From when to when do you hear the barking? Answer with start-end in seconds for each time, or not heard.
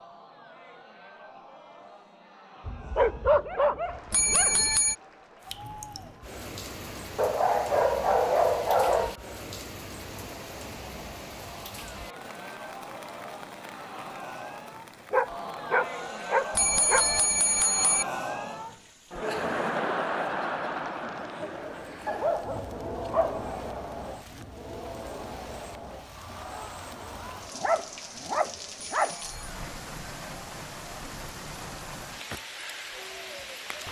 2.6-4.7, 7.2-9.2, 15.1-17.1, 22.1-23.4, 27.6-29.1.